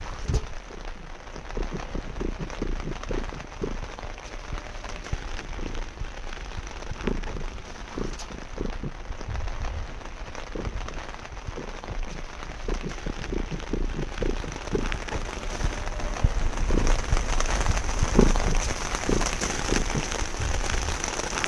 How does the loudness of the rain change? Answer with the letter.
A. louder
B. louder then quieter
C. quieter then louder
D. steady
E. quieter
A.